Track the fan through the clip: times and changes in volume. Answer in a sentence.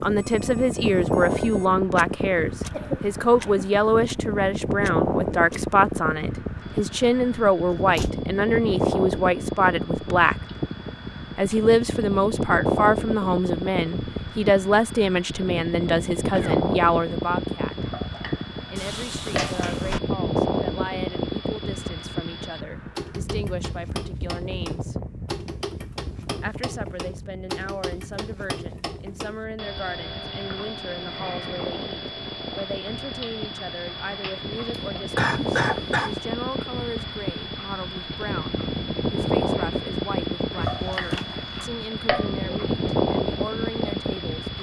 The fan can be heard from 0.0 to 44.5 s, getting quieter then louder.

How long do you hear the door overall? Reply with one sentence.
The door can be heard for 3 seconds in total.